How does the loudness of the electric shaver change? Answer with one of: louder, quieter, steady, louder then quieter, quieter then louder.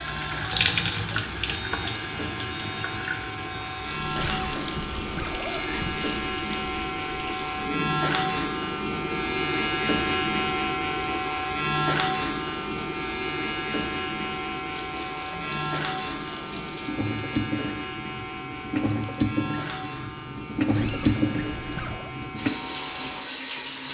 louder then quieter.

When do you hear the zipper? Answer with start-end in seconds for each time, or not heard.
4.3-6.1, 20.8-22.1.